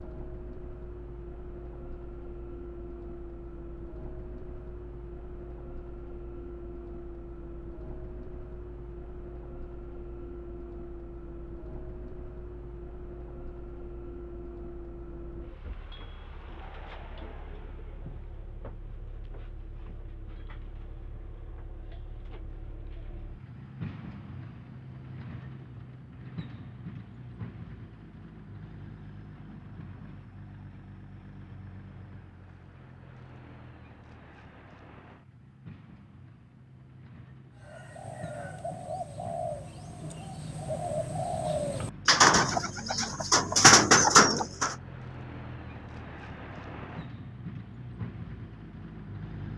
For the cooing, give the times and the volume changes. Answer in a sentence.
The cooing can be heard from 37.6 to 44.8 s, getting louder.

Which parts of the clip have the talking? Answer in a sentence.
The talking can't be heard in this clip.